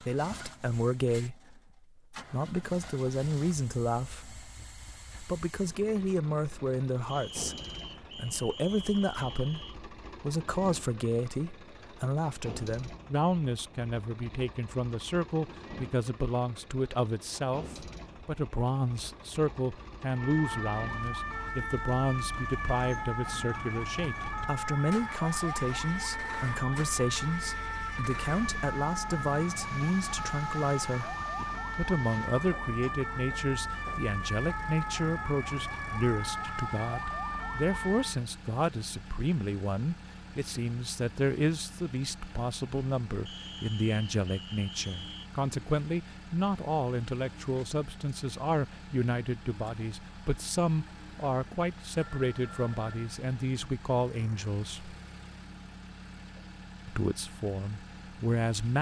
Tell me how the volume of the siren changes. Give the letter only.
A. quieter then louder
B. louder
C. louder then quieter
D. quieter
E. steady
E.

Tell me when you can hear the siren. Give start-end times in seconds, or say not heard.
20.1-38.2.